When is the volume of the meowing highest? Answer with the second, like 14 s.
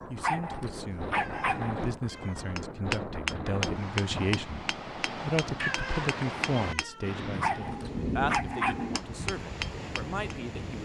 6 s.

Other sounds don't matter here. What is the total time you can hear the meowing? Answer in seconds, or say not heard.
3 s.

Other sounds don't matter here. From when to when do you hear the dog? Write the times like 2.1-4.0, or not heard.
0.1-1.9, 7.3-8.9.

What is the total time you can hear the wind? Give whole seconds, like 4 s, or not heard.
11 s.